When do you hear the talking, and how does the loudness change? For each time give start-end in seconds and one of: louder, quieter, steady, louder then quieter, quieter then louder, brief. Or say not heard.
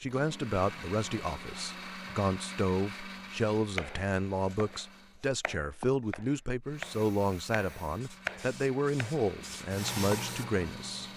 0.0-11.1 steady.